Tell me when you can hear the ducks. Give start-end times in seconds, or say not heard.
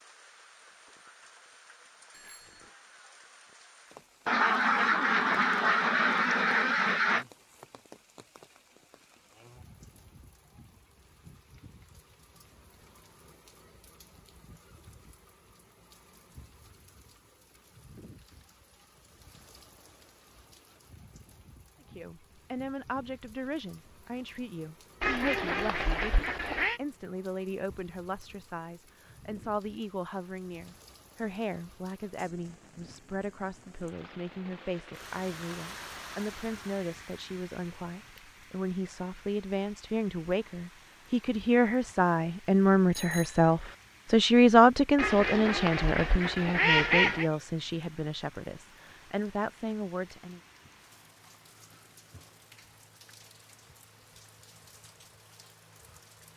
4.2-7.2, 25.0-26.8, 45.0-47.3.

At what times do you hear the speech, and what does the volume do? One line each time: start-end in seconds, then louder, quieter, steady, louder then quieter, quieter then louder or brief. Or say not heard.
21.9-50.4 louder.